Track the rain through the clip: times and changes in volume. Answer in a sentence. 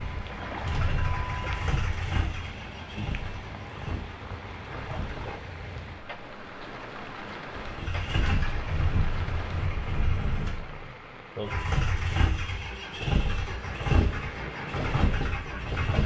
You can hear the rain from 0.0 to 15.8 s, at a steady volume.